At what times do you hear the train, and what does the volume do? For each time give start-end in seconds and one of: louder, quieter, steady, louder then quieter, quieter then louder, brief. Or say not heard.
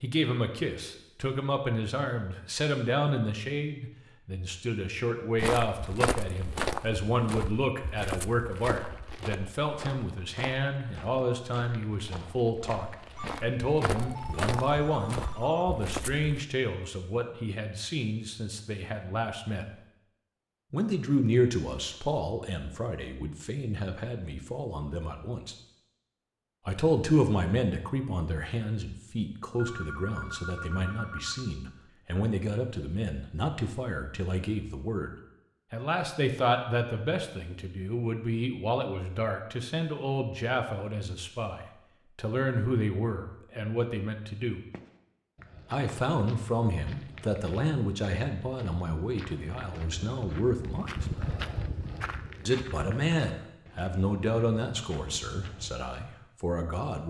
not heard.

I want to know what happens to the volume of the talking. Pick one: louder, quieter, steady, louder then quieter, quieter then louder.
steady.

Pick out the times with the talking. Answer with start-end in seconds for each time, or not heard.
0.0-19.6, 20.7-25.6, 26.6-44.6, 45.7-51.0, 52.5-57.0.